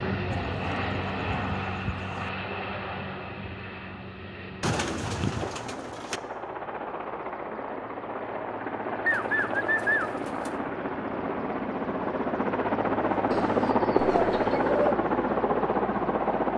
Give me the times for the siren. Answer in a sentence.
The siren can't be heard in this clip.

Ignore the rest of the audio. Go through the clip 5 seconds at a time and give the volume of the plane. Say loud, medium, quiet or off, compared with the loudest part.
medium, medium, loud, loud.